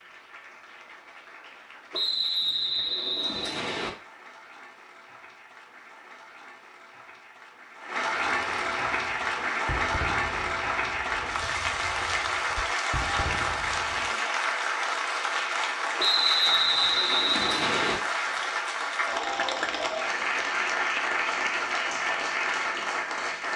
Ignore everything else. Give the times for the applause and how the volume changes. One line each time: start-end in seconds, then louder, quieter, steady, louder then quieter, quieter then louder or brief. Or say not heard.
0.0-23.5 louder.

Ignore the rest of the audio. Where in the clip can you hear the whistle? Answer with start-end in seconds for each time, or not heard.
1.9-3.9, 15.9-18.0.